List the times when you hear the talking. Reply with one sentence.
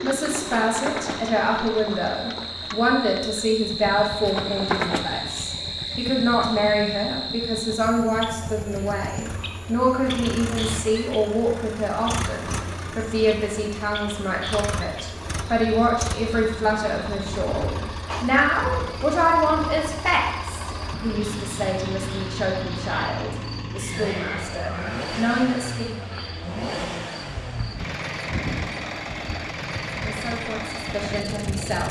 You can hear the talking from 0.0 to 25.9 s and from 30.0 to 31.8 s.